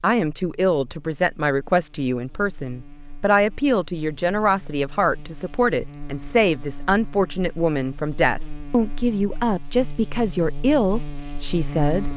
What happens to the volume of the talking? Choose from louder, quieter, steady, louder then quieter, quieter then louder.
steady.